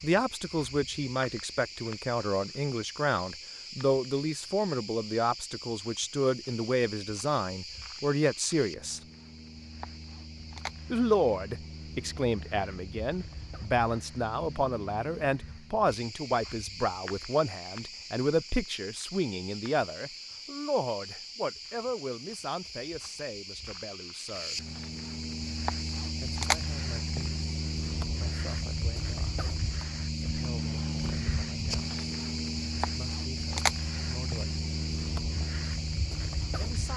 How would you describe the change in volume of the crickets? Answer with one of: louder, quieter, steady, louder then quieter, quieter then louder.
louder.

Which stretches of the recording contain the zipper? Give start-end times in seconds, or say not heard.
not heard.